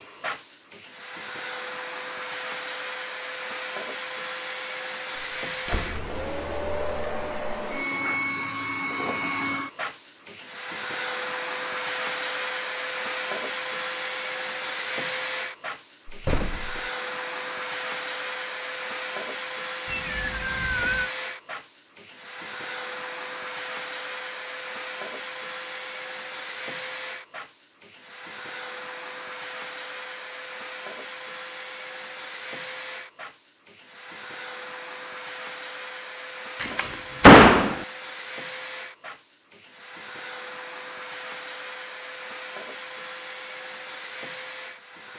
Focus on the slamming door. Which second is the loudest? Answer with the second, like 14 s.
37 s.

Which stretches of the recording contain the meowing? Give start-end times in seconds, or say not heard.
19.9-21.1.